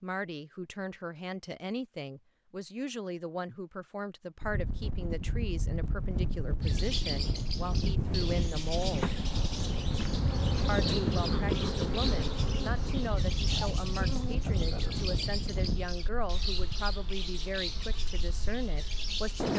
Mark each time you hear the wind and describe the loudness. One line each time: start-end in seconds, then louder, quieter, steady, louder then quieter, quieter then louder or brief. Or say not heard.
4.4-19.5 quieter.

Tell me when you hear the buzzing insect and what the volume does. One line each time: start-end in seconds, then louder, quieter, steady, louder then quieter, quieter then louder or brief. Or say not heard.
8.8-19.4 quieter.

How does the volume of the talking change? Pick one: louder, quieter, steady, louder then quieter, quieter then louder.
steady.